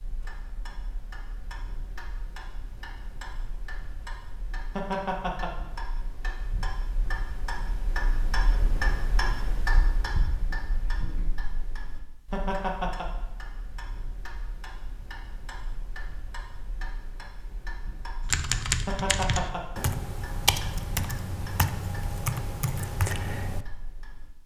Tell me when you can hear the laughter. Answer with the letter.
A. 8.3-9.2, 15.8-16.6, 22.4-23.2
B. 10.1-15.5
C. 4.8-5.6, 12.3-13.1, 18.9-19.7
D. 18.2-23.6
C.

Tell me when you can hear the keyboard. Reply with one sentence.
You can hear the keyboard from 18.2 to 23.6 s.